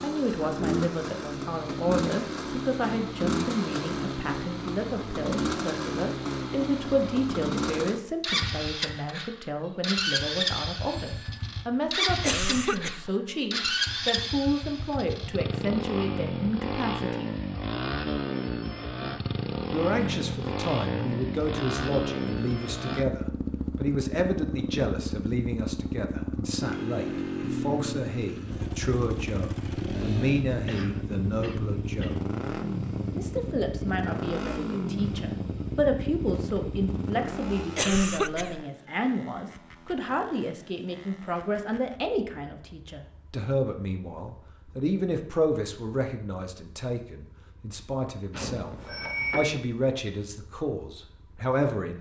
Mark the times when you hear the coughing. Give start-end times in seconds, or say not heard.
12.2-13.1, 30.6-32.2, 37.8-38.6.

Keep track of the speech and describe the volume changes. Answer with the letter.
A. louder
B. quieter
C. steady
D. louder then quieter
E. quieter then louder
C.